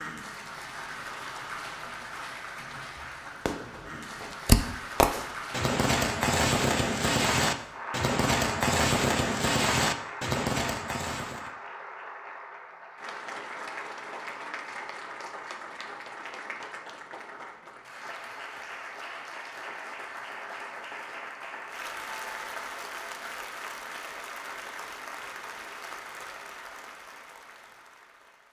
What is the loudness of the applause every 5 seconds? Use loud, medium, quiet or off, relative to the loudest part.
loud, loud, loud, loud, loud, medium.